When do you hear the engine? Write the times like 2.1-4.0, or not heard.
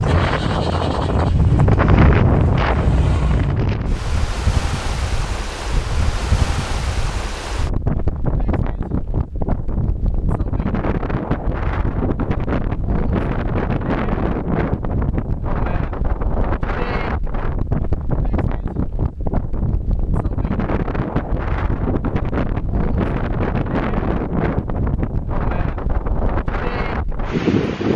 0.0-3.6.